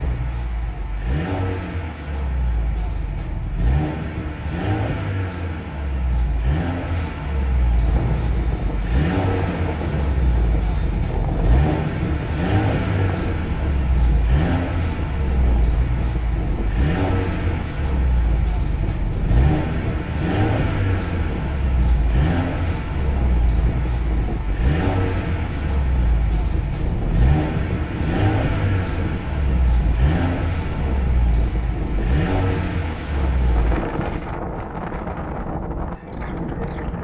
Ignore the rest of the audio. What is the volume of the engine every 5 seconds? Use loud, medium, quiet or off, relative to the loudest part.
loud, loud, loud, loud, loud, loud, loud, off.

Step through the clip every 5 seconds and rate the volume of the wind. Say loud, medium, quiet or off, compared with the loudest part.
off, loud, loud, loud, loud, loud, loud, loud.